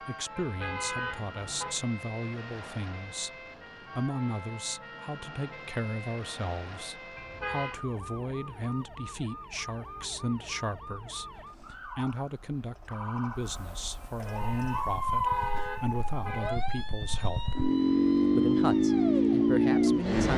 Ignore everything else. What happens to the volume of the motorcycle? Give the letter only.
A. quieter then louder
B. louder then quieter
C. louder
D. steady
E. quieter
C.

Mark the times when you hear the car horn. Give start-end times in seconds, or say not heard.
0.3-1.8, 7.2-7.8, 14.1-16.6.